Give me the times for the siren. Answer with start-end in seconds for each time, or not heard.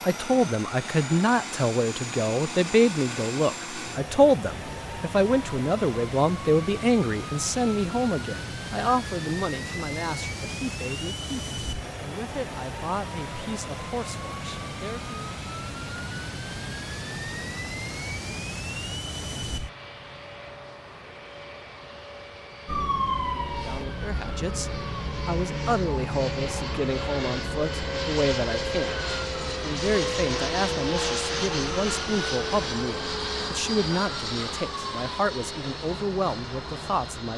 22.6-37.3.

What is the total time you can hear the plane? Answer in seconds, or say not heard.
37 s.